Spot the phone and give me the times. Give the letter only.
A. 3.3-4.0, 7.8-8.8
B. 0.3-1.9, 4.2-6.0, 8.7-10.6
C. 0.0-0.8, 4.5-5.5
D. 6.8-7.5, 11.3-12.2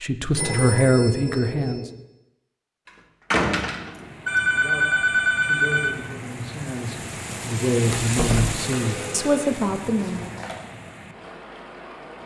B.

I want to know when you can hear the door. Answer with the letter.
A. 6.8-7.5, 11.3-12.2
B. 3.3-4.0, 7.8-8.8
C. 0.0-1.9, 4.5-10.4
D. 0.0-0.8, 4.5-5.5
B.